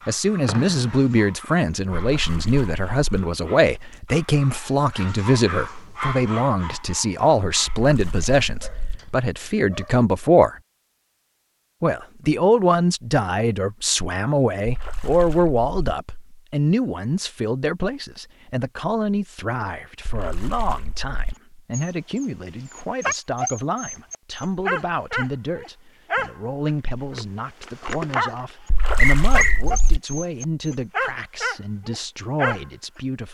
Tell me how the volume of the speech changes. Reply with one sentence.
The loudness of the speech goes down.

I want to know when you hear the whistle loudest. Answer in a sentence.
The volume of the whistle peaks at 29 seconds.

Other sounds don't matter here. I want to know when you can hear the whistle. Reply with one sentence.
You can hear the whistle from 0.5 to 0.9 s and from 28.9 to 29.6 s.